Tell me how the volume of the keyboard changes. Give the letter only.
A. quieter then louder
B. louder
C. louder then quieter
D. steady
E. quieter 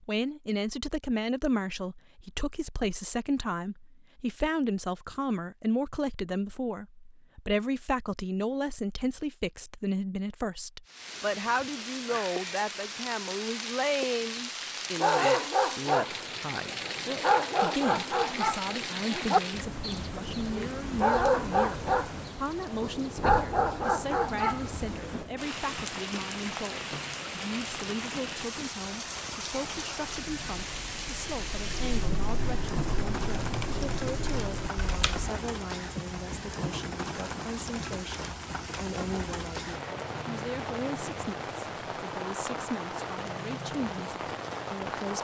B.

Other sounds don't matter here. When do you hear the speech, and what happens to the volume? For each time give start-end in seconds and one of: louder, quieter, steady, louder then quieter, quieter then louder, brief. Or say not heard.
0.0-45.1 quieter.